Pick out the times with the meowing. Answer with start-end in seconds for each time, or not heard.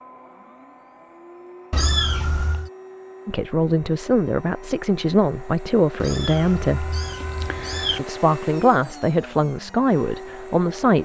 1.7-2.7, 6.0-8.0.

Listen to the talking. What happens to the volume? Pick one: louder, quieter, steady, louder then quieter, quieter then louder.
steady.